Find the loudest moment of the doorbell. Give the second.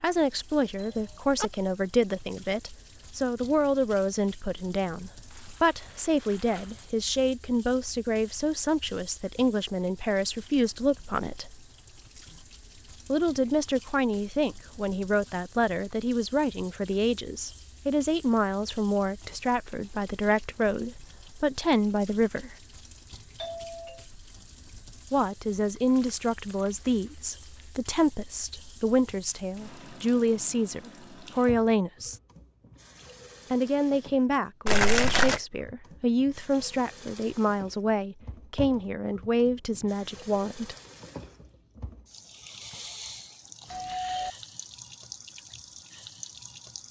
44 s.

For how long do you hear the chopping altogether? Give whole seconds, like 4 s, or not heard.
not heard.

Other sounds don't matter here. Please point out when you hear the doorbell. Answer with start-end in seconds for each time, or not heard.
0.8-1.5, 23.4-24.1, 43.6-44.4.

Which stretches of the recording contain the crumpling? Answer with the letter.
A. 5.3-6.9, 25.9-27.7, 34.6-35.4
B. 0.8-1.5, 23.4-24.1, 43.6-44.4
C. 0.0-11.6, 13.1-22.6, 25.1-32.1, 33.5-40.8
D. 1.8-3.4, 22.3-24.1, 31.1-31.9
A.